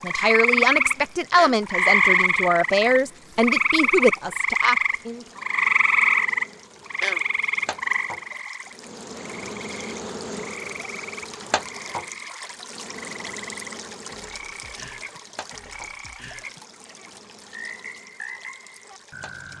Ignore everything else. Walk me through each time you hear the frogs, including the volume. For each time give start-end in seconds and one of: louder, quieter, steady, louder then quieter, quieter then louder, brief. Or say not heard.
0.0-19.5 quieter.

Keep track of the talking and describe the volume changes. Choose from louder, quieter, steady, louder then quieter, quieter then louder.
steady.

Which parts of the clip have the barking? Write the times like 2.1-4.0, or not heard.
not heard.